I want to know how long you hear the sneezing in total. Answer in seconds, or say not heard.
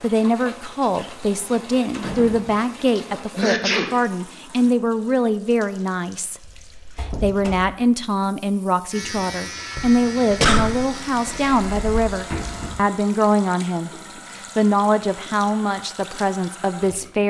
3 s.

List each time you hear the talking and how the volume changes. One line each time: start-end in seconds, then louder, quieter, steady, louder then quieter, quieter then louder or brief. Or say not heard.
0.0-17.2 steady.